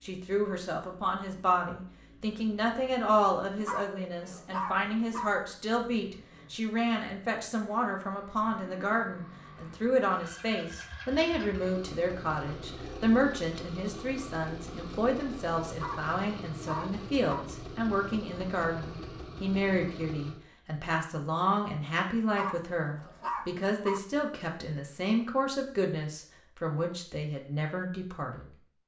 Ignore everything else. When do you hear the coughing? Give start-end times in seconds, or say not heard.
not heard.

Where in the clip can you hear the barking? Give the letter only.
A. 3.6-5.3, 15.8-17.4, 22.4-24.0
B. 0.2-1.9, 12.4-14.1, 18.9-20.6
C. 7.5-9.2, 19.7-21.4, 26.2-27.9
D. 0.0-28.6
A.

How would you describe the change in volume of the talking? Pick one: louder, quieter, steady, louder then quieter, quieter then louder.
steady.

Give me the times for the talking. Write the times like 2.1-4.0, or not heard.
0.0-28.6.